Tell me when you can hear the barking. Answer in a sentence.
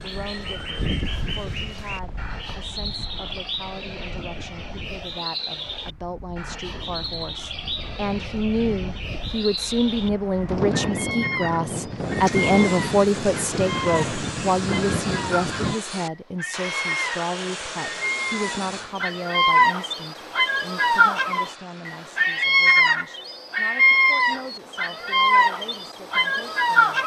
The barking can't be heard in this clip.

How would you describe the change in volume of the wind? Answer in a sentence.
The volume of the wind goes down, then up.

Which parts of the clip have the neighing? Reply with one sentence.
The neighing can't be heard in this clip.